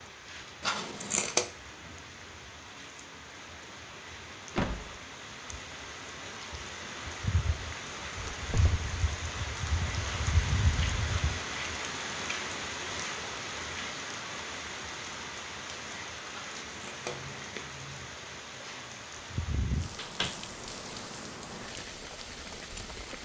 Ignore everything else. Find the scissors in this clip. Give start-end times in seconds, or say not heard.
0.6-1.4, 16.3-17.6.